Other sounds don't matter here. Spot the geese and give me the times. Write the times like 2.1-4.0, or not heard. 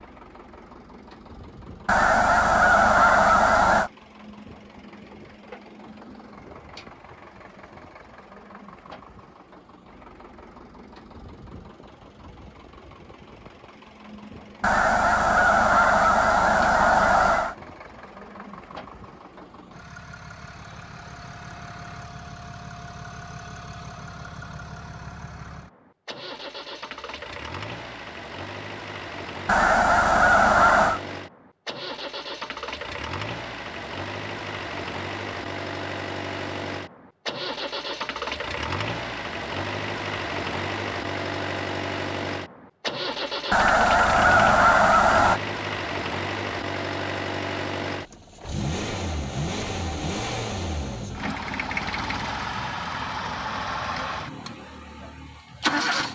1.9-3.9, 14.6-17.6, 29.4-31.0, 43.5-45.4.